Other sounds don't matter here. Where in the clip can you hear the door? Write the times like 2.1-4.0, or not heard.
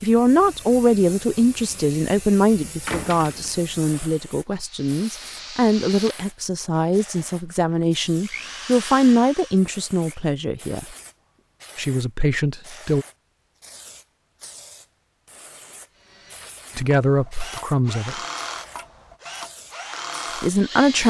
2.9-3.5.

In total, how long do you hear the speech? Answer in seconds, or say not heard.
14 s.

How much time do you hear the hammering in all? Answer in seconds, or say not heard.
not heard.